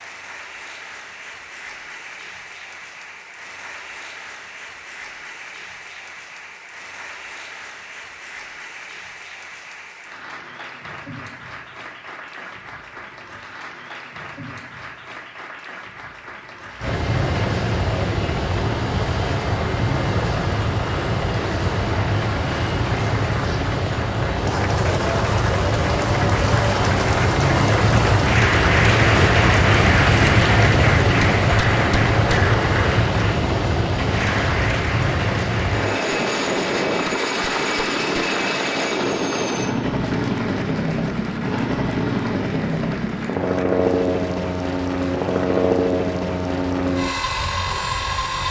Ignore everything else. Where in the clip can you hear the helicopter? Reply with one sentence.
You can hear the helicopter from 16.8 to 48.4 s.